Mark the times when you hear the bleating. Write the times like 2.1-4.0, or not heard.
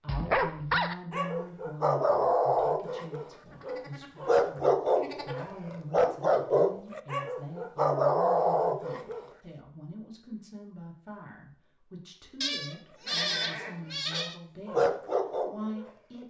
3.3-5.4, 12.4-14.3.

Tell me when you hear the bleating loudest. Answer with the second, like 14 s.
13 s.